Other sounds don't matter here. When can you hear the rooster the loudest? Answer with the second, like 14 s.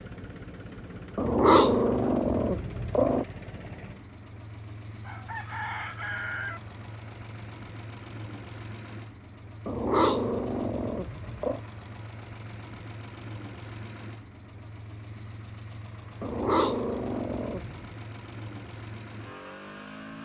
6 s.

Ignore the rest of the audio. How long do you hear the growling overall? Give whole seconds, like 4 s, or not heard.
6 s.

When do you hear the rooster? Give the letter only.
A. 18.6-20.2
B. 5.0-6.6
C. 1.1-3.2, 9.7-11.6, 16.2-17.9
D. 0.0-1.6
B.